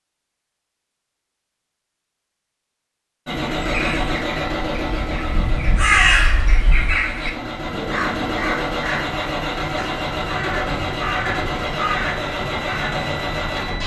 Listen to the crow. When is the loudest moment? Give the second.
6 s.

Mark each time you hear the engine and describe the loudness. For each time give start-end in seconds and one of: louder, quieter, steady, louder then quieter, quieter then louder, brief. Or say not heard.
3.2-13.8 quieter then louder.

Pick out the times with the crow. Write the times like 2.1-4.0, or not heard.
3.5-13.1.